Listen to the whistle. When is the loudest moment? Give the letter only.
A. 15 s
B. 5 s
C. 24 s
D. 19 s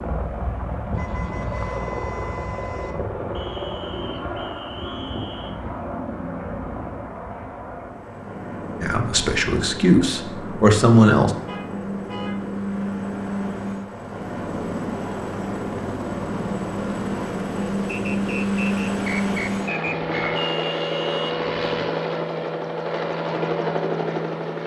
D.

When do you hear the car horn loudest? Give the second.
21 s.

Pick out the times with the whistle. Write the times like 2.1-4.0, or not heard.
3.3-5.5, 17.9-20.3.